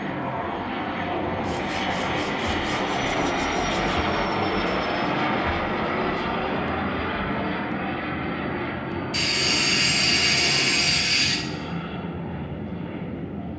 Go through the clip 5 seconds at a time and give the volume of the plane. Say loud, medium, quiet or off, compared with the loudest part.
loud, loud, medium.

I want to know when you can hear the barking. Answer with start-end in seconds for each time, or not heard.
not heard.